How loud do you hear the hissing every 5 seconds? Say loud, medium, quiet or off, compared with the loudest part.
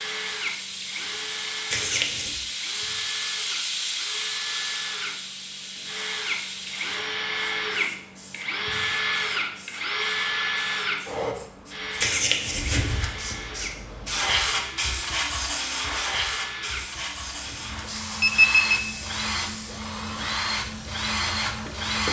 loud, medium, loud, loud, medium.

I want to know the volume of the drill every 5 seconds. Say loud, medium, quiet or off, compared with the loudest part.
medium, loud, loud, medium, loud.